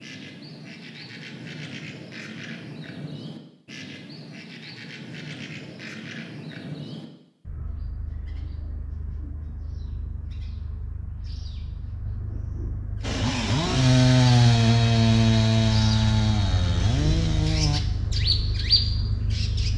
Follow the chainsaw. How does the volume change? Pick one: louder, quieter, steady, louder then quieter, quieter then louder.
quieter.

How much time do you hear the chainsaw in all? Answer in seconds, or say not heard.
5 s.